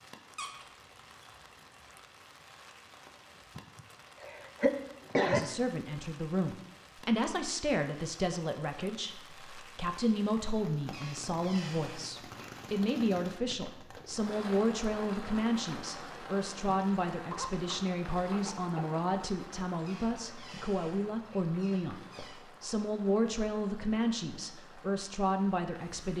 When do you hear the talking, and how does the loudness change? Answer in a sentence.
You can hear the talking from 5.2 to 26.1 s, at a steady volume.